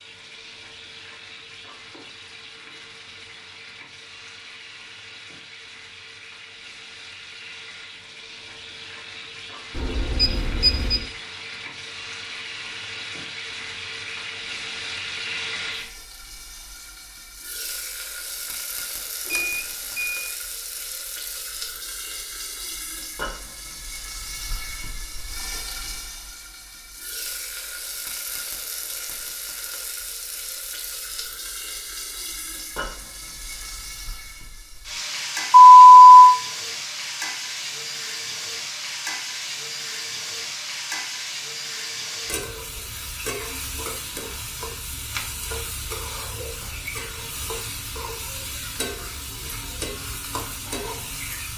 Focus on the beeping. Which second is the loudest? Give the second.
36 s.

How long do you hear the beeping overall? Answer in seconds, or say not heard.
3 s.